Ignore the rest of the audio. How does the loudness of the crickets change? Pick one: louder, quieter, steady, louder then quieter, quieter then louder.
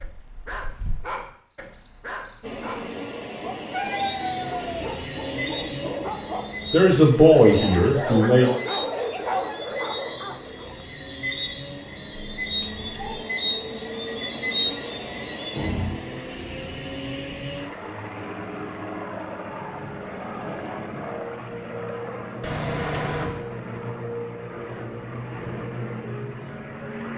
louder.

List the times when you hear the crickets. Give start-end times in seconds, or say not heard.
0.0-15.9.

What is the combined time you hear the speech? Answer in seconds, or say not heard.
2 s.